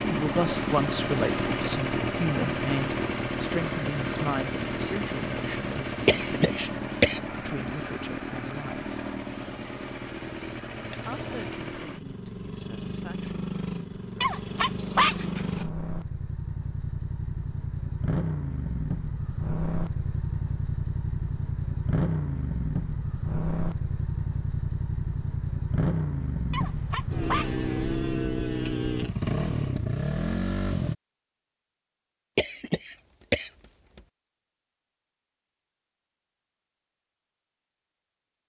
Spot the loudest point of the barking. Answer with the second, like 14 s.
15 s.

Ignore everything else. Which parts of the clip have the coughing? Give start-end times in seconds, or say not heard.
6.0-7.7, 32.4-34.0.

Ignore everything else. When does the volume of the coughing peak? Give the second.
7 s.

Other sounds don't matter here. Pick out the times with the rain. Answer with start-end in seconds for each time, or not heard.
not heard.